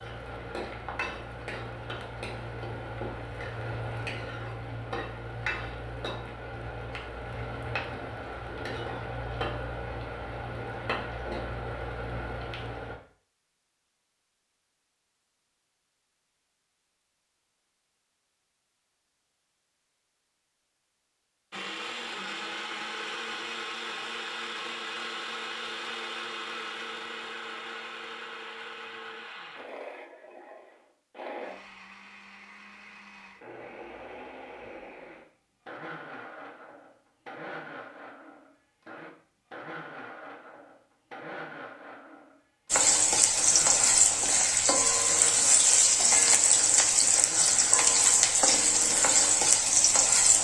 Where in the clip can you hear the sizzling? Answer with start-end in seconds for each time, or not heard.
0.0-12.9, 42.7-50.3.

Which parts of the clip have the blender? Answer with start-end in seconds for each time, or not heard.
21.5-50.3.